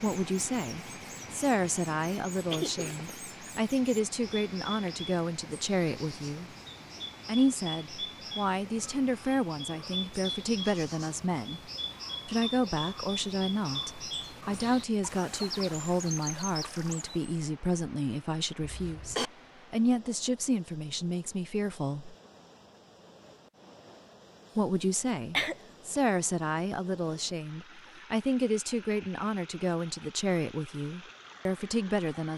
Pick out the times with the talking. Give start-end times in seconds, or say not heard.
0.0-6.5, 7.2-11.6, 12.2-22.1, 24.6-32.3.